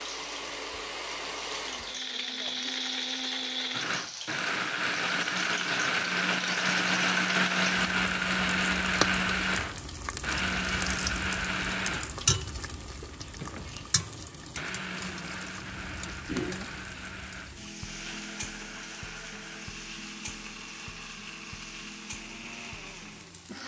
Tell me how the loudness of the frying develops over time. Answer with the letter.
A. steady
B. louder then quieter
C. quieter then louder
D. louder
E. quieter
B.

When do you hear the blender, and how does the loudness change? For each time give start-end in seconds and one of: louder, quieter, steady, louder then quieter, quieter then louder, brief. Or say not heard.
0.0-23.6 louder then quieter.